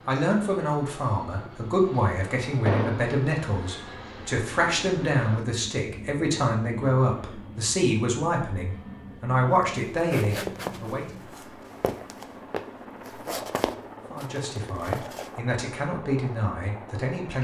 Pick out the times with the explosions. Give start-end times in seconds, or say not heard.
2.6-3.1.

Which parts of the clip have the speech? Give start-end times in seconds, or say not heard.
0.1-11.1, 14.1-17.3.